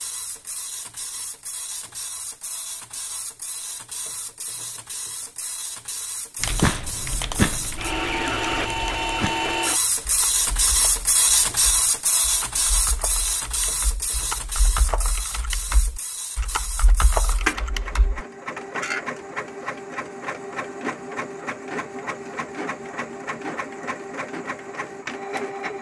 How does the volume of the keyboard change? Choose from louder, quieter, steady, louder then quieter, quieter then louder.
quieter then louder.